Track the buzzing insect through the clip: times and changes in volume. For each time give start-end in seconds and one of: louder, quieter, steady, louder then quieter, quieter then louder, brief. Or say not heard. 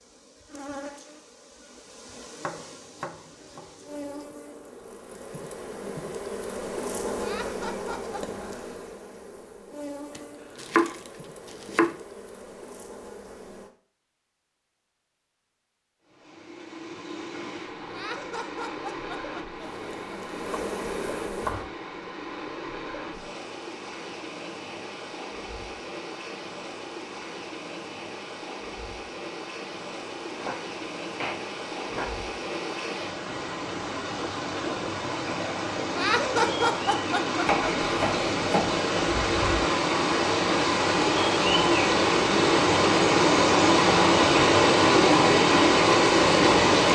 0.0-13.7 louder then quieter
19.6-21.6 brief.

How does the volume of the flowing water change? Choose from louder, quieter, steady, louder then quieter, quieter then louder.
louder.